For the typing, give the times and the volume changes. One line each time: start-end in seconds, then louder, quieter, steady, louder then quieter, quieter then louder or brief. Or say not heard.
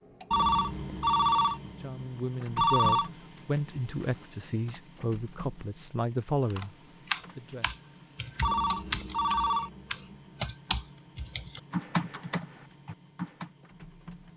6.5-13.5 steady.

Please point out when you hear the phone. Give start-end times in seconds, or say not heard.
0.3-3.1, 8.4-10.3.